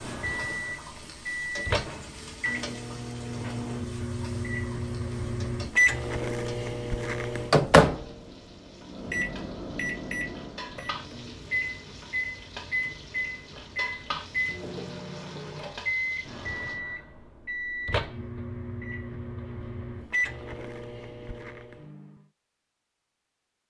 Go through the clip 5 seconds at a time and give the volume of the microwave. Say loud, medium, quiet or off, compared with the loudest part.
medium, loud, medium, medium, medium.